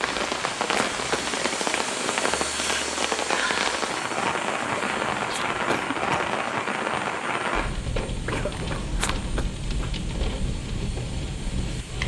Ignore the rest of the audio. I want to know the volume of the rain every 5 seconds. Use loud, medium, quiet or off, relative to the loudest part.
loud, loud, medium.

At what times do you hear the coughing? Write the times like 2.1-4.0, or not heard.
0.0-1.4, 4.5-6.3, 8.2-9.4.